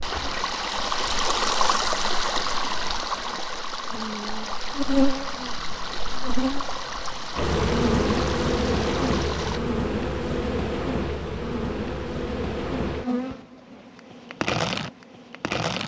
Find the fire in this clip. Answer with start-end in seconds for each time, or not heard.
not heard.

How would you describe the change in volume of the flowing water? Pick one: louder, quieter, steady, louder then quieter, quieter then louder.
quieter.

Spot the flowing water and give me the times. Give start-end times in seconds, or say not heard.
0.0-9.6.